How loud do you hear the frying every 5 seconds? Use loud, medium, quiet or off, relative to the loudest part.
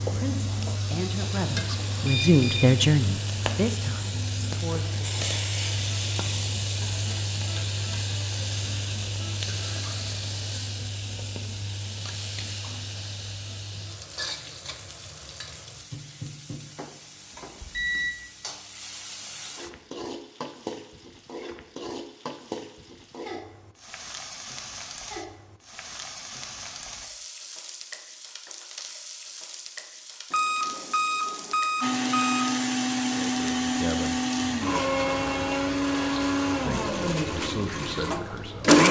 loud, loud, medium, medium, medium, medium, medium, medium.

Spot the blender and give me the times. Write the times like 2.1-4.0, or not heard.
31.8-38.8.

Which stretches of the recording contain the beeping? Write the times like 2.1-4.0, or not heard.
2.0-2.8, 17.4-18.1, 30.3-32.5.